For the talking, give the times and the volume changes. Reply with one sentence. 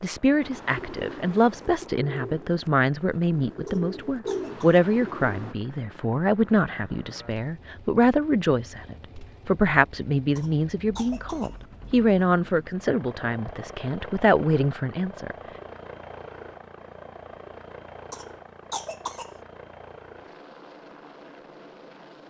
You can hear the talking from 0.0 to 15.3 s, at a steady volume.